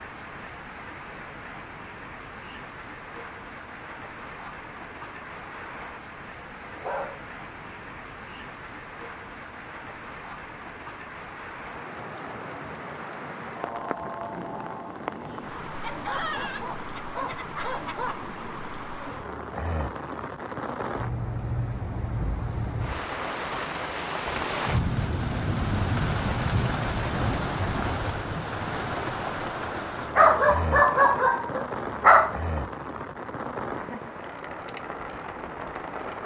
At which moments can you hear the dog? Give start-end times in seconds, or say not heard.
6.5-7.3, 15.8-18.1, 30.1-32.4.